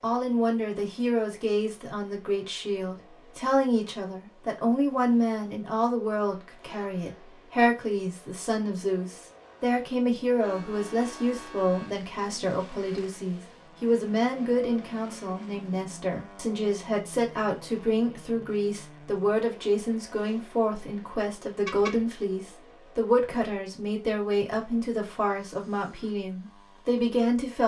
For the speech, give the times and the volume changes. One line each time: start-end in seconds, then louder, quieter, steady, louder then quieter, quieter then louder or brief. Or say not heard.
0.0-27.6 steady.